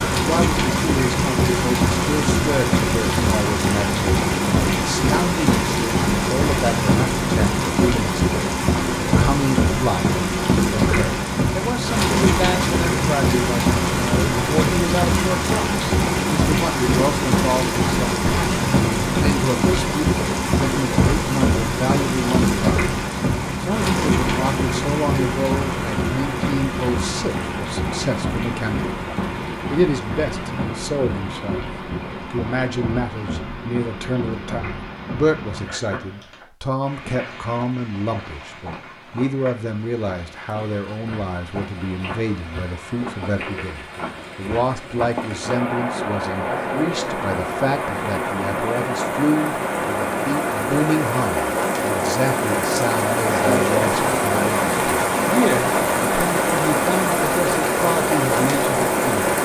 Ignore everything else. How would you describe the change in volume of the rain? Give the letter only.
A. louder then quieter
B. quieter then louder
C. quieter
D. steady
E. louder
B.